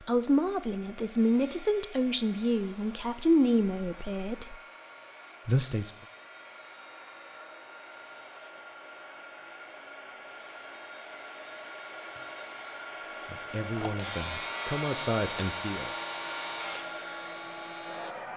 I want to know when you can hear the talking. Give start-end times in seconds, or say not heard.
0.1-4.5, 5.5-5.9, 13.2-15.9.